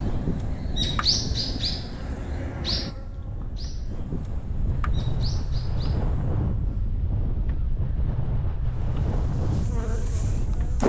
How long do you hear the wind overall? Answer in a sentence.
You can hear the wind for 11 seconds altogether.